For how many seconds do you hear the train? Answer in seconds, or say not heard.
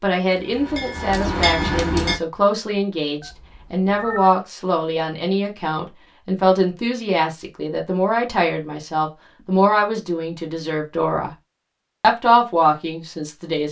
2 s.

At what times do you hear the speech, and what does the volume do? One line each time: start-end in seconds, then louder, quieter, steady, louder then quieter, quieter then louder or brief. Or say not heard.
0.0-11.3 steady
12.0-13.6 brief.